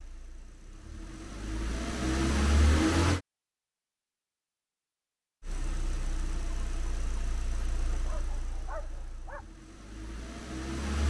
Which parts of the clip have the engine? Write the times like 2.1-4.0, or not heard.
0.0-3.2, 5.4-11.0.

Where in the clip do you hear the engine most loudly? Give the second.
3 s.